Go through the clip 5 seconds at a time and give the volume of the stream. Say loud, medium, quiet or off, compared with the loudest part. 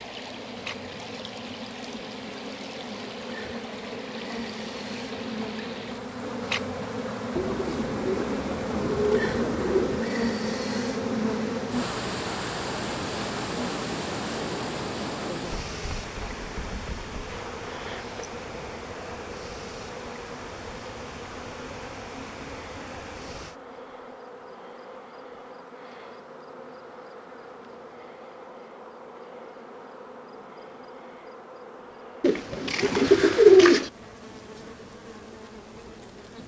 medium, medium, loud, loud, medium, off, off, off.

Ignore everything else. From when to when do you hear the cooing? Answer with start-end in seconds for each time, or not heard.
7.3-10.1, 32.2-33.9.